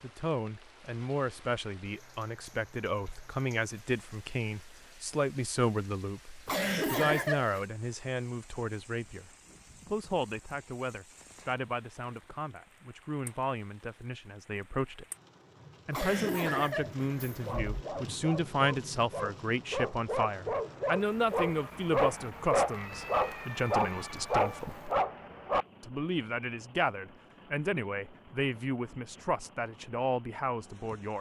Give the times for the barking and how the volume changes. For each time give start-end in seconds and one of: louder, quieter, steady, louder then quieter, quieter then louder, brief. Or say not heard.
17.4-25.6 louder.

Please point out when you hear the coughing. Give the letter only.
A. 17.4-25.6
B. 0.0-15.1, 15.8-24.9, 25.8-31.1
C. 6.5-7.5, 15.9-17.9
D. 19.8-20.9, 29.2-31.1
C.